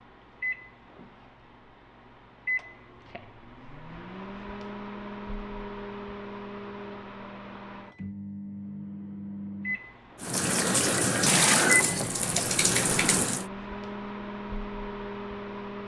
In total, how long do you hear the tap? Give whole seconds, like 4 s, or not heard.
3 s.